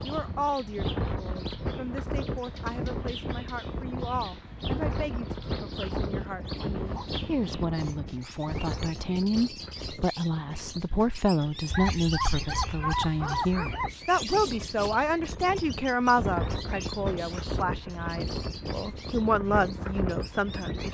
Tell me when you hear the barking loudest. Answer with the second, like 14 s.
13 s.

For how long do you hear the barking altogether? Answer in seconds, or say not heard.
4 s.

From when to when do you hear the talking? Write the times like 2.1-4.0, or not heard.
0.0-20.8.